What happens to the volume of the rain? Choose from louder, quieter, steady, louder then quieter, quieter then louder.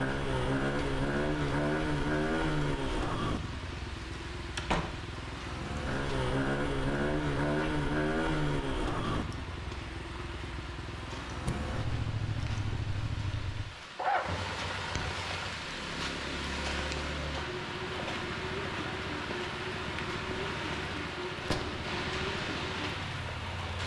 louder.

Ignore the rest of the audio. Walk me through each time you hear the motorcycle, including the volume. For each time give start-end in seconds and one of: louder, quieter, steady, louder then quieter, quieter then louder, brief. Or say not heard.
0.0-23.8 quieter.